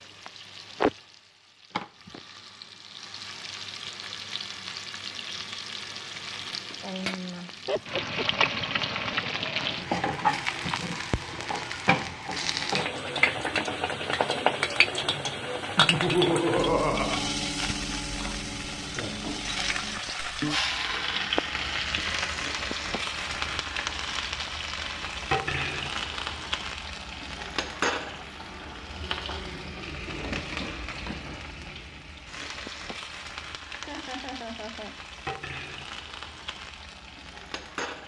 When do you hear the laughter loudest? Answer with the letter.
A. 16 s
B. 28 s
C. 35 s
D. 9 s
A.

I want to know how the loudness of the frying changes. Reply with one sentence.
The loudness of the frying goes up, then down.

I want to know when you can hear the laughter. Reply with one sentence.
The laughter can be heard from 7.7 to 8.4 s, from 15.8 to 17.3 s and from 33.8 to 35.0 s.